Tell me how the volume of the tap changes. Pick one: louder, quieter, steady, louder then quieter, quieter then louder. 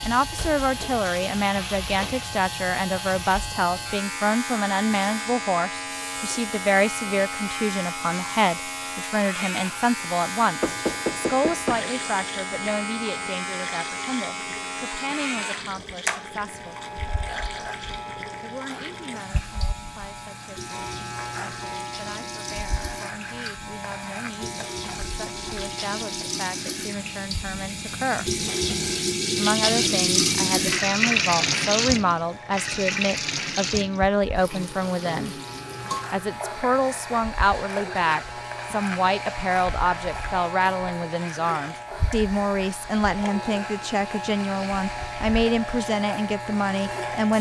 louder then quieter.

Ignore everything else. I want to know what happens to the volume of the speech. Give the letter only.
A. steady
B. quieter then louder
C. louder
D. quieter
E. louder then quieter
B.